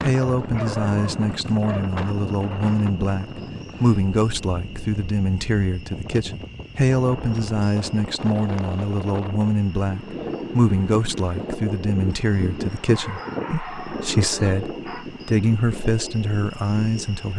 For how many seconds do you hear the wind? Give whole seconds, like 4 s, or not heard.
17 s.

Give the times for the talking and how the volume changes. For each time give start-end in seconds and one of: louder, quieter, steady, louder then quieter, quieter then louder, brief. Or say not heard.
0.0-17.3 steady.